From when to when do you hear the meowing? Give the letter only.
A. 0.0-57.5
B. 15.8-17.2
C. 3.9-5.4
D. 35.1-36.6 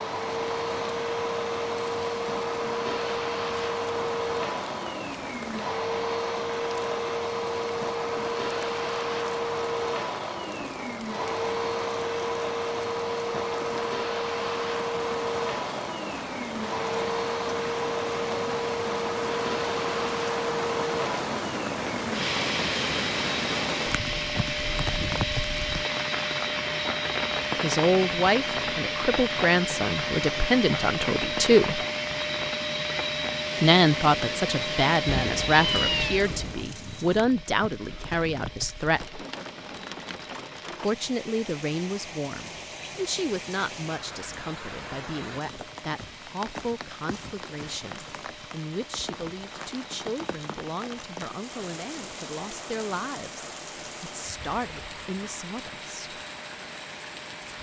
D.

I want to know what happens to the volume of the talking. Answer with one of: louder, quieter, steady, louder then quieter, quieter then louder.
quieter.